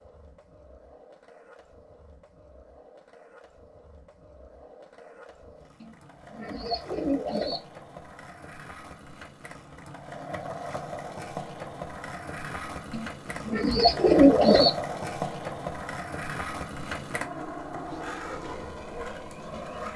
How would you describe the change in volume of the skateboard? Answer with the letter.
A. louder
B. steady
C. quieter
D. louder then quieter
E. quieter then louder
A.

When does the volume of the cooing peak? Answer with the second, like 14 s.
14 s.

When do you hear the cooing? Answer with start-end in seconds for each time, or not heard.
5.8-7.6, 12.9-14.7.